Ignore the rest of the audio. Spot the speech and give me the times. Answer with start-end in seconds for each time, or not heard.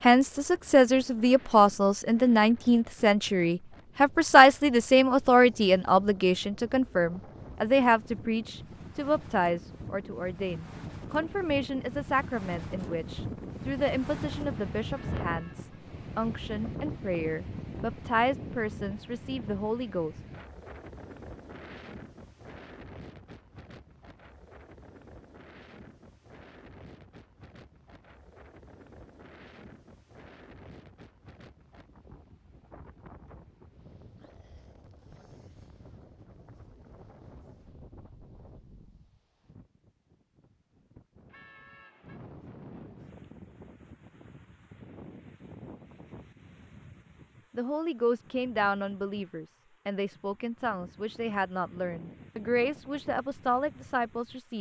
0.0-20.2, 47.5-54.5.